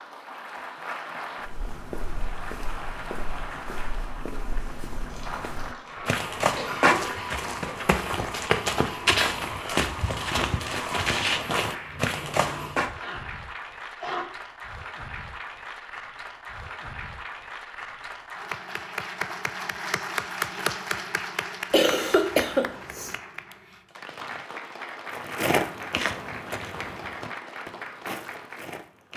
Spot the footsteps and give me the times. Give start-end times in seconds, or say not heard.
1.4-12.9, 25.1-29.1.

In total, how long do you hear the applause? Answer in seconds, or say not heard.
29 s.